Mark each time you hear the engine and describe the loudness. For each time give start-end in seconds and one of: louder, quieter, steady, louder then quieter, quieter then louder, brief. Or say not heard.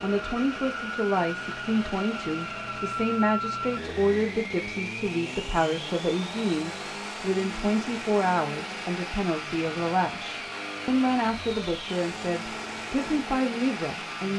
0.0-14.3 steady.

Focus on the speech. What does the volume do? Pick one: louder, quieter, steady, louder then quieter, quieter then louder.
steady.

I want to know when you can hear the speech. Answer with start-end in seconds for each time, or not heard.
0.0-14.3.